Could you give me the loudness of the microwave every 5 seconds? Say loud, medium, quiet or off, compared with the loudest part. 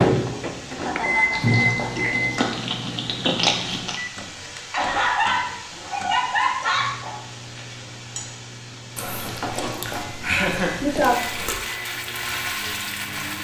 loud, quiet, quiet.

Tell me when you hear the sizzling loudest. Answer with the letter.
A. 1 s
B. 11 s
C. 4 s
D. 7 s
B.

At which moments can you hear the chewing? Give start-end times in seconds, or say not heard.
1.3-4.0, 8.9-11.6.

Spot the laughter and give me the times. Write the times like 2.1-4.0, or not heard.
0.7-2.1, 4.7-6.9, 10.2-10.9.